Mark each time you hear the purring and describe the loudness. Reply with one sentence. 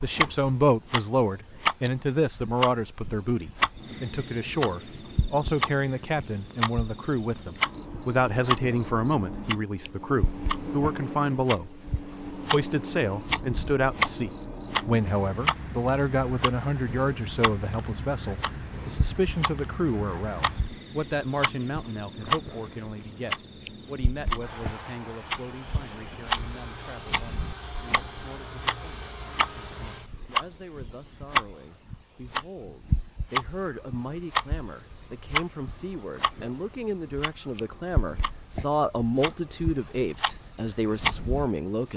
The purring can't be heard in this clip.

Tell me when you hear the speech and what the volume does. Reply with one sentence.
The speech can be heard from 0.0 to 41.9 s, getting quieter then louder.